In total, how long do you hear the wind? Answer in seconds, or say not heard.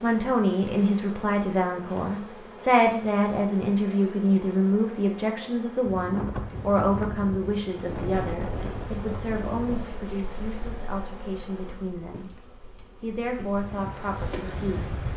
9 s.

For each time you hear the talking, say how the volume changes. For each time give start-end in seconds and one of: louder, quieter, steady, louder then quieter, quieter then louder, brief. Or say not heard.
0.0-12.3 quieter
13.0-14.9 brief.